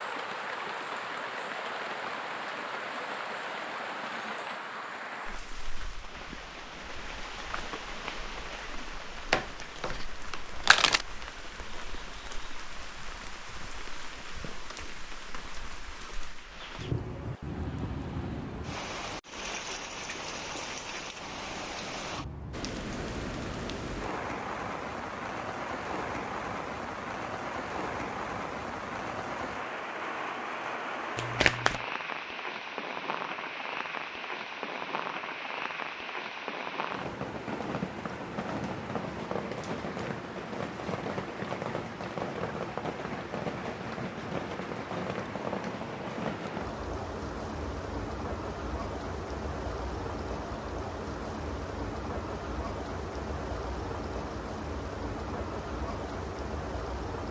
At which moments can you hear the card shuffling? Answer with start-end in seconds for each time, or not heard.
9.3-11.1, 31.1-31.8.